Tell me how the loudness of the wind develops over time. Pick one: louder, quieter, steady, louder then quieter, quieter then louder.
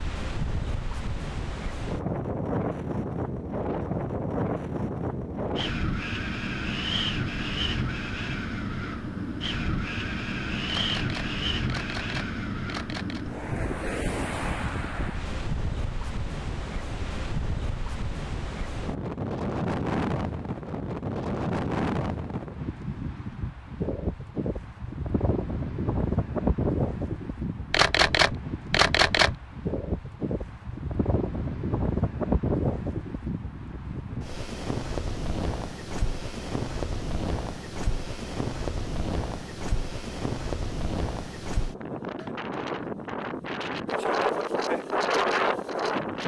steady.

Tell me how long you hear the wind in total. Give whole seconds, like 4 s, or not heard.
46 s.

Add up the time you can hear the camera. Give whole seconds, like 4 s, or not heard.
4 s.